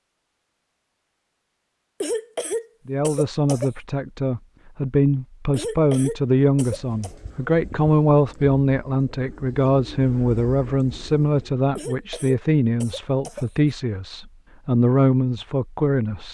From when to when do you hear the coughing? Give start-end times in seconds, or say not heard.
2.0-3.7, 5.5-7.1, 11.8-13.8.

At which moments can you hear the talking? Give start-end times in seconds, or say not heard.
2.9-16.3.